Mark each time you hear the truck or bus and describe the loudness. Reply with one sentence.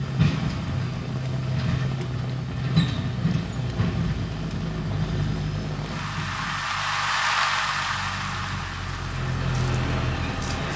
The truck or bus can be heard from 0.0 to 10.7 s, getting quieter then louder.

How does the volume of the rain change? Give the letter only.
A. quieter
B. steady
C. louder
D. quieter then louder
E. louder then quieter
C.